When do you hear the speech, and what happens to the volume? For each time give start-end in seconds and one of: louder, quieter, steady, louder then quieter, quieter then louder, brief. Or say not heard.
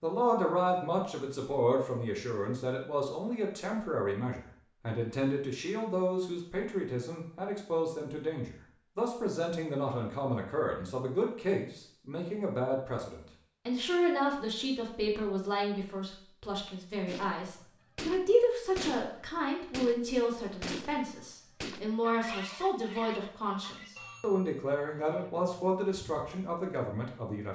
0.0-27.5 steady.